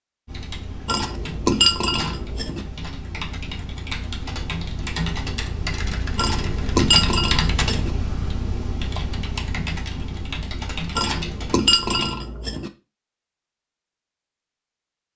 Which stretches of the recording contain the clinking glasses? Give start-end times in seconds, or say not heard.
0.8-2.6, 6.2-7.9, 10.9-12.7.